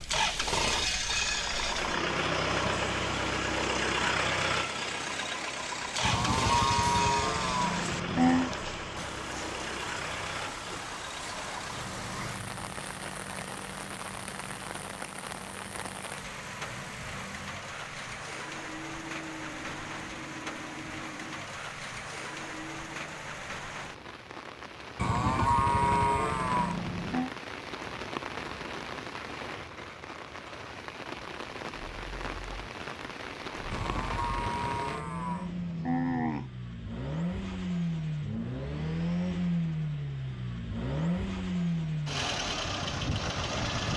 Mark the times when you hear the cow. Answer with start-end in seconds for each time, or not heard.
6.0-8.5, 24.9-27.3, 33.7-36.5.